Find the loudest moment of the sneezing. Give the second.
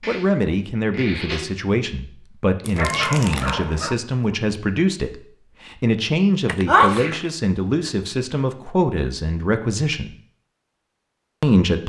7 s.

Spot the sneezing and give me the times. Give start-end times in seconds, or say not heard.
0.0-1.4, 6.7-7.2.